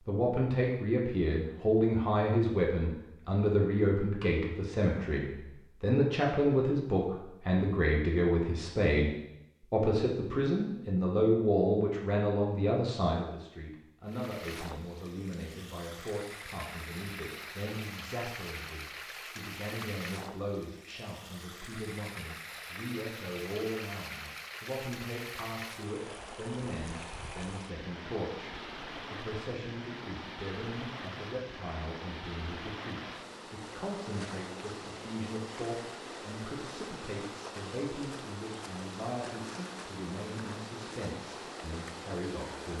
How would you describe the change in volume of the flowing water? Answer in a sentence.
The volume of the flowing water stays about the same.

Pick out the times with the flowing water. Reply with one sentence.
You can hear the flowing water from 14.1 to 42.7 s.